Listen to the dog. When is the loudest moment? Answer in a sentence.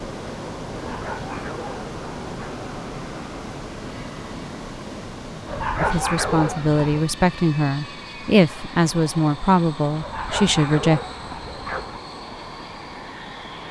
The volume of the dog peaks at 6 seconds.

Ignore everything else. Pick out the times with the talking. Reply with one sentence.
The talking can be heard from 5.8 to 11.0 s.